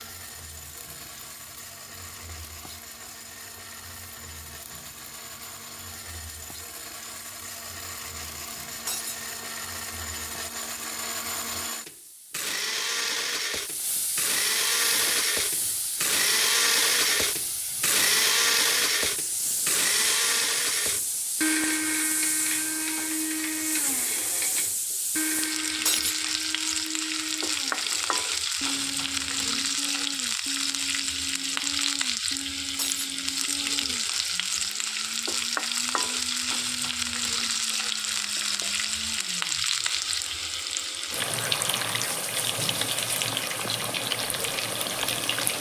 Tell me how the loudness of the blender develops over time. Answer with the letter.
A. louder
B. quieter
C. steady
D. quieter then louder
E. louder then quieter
E.